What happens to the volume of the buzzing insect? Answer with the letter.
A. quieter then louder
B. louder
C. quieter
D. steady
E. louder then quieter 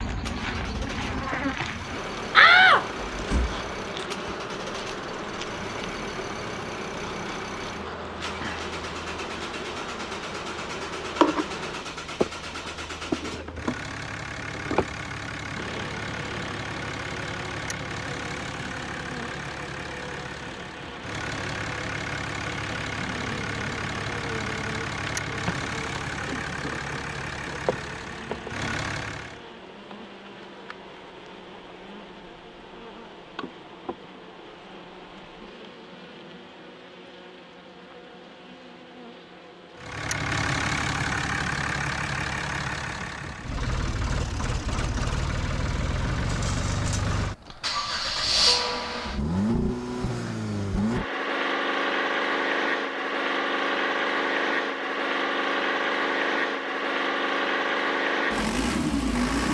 C.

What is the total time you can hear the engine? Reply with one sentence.
You can hear the engine for 49 seconds altogether.